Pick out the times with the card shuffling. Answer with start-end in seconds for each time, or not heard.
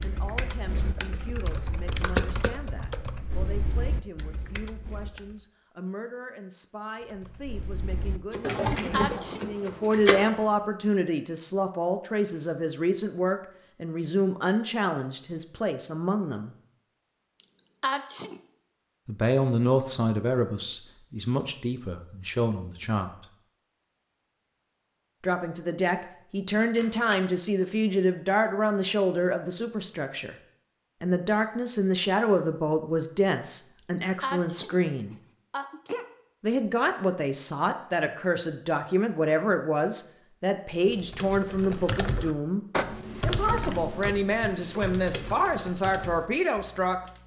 8.3-10.2, 26.8-27.2.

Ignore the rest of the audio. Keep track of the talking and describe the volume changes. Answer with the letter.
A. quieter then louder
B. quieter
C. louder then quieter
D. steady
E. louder
E.